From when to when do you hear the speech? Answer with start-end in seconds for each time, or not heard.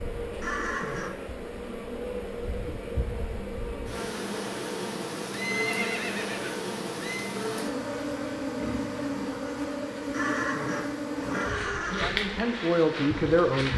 12.0-13.7.